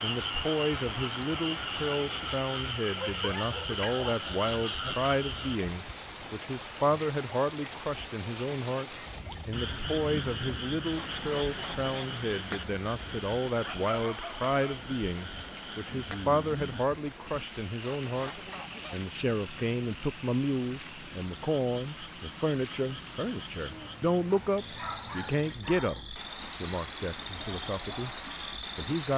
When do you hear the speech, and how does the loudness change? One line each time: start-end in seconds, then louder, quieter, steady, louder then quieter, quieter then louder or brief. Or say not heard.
0.0-29.1 steady.